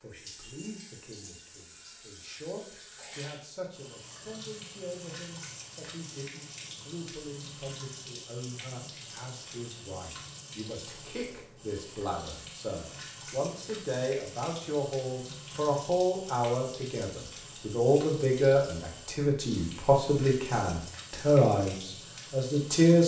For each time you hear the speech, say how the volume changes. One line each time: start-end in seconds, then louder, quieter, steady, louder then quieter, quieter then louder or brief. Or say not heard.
0.0-23.0 louder.